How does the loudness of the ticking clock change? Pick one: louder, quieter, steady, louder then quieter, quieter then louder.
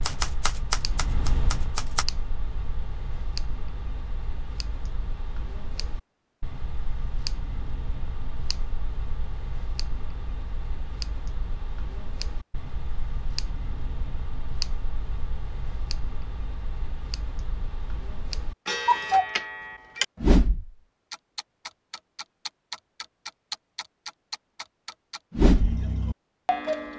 louder.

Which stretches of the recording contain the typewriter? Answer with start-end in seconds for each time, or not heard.
0.0-2.0.